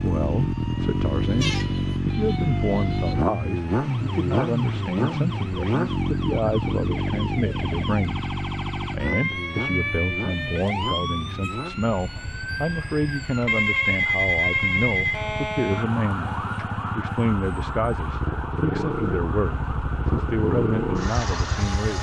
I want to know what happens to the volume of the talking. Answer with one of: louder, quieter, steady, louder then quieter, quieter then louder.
steady.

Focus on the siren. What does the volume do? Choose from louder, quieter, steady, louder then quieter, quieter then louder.
louder then quieter.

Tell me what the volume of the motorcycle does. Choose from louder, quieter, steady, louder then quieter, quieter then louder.
quieter then louder.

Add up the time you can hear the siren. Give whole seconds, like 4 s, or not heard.
22 s.